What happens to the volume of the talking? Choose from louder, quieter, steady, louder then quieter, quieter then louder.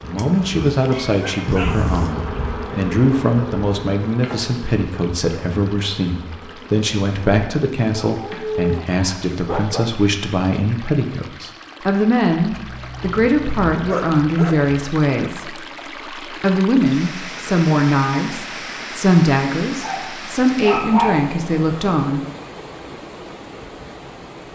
steady.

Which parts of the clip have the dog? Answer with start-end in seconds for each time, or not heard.
0.1-2.1, 8.1-9.9, 12.5-14.7, 19.8-21.2.